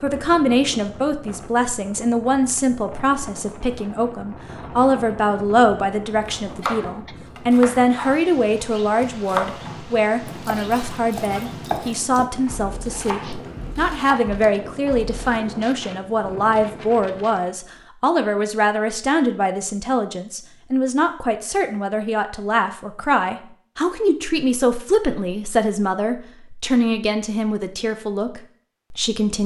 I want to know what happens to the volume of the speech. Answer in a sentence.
The loudness of the speech stays about the same.